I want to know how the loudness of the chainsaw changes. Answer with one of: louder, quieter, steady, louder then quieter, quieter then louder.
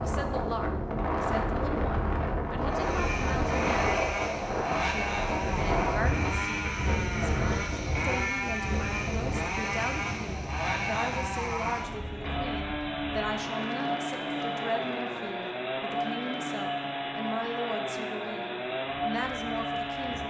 steady.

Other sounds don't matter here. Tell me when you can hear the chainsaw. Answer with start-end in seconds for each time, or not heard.
2.6-20.2.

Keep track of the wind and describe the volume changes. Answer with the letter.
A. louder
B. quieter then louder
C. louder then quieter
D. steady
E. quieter
E.